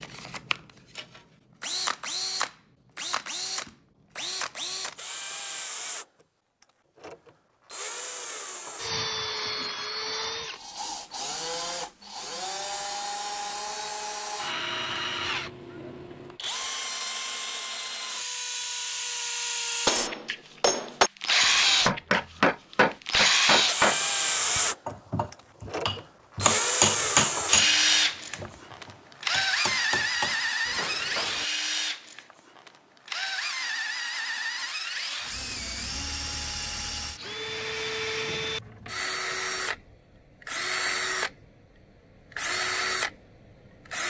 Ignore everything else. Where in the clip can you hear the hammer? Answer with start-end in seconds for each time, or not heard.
19.9-31.4.